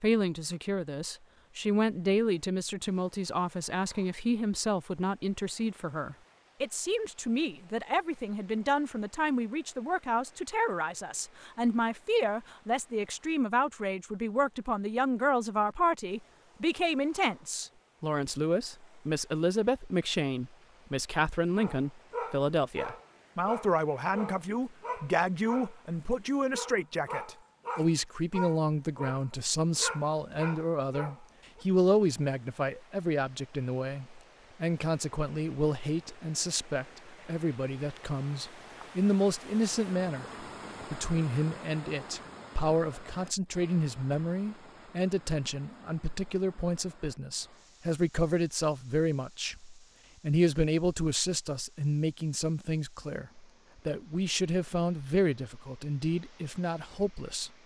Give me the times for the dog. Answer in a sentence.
You can hear the dog from 21.6 to 31.6 s.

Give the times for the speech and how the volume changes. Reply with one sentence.
You can hear the speech from 0.0 to 57.5 s, at a steady volume.